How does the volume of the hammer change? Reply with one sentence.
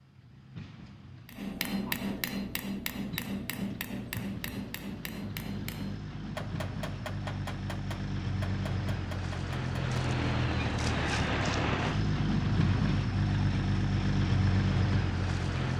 The volume of the hammer goes down.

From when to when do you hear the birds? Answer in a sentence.
You can't hear the birds here.